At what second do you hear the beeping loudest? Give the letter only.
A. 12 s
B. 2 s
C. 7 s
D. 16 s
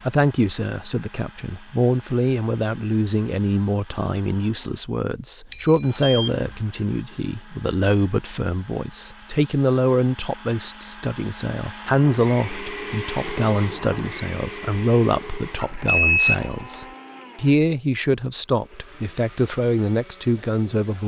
D.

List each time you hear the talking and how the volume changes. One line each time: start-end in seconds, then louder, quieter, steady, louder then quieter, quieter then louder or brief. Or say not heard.
0.0-21.0 steady.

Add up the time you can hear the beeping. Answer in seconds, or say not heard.
2 s.